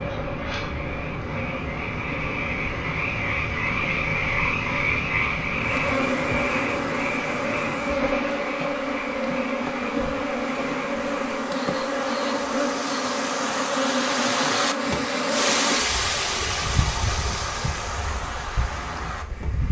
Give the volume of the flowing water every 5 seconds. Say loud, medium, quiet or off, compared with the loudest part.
medium, medium, loud, loud.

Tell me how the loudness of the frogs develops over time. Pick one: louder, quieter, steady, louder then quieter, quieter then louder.
louder then quieter.